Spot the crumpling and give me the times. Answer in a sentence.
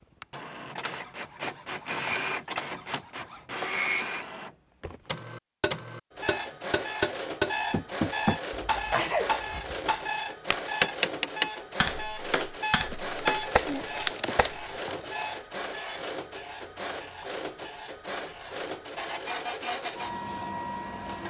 The crumpling can be heard from 12.9 to 15.4 s.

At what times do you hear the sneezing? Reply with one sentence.
The sneezing can be heard from 8.5 to 9.9 s.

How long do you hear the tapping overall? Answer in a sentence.
You can hear the tapping for 9 seconds altogether.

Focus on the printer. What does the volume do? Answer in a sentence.
The volume of the printer stays about the same.